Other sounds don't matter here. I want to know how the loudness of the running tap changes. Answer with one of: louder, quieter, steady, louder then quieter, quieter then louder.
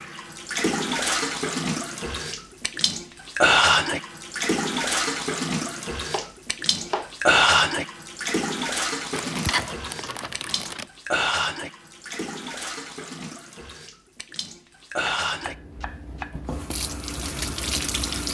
quieter.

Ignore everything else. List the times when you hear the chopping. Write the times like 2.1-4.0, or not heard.
5.7-7.2, 15.2-16.4.